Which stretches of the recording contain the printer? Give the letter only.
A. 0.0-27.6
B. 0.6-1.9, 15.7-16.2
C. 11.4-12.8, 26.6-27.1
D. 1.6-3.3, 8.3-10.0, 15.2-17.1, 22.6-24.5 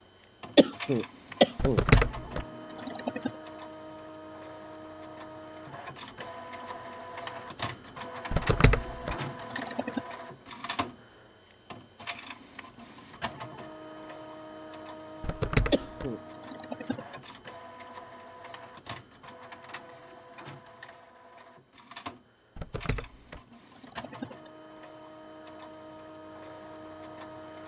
A.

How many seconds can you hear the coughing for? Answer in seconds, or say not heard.
2 s.